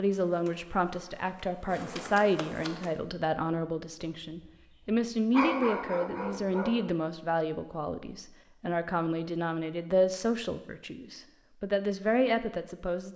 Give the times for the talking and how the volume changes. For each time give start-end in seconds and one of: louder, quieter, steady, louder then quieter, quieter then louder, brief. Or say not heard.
0.0-13.1 steady.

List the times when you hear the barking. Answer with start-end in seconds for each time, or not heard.
5.3-6.8.